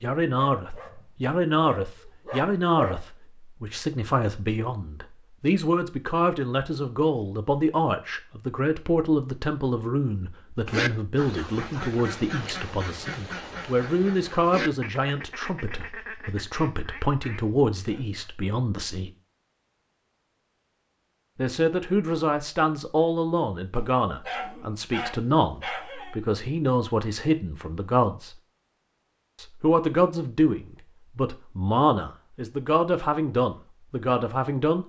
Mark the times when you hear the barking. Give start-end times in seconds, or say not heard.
0.5-3.0, 23.7-26.2.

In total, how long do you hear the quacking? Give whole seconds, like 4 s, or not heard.
8 s.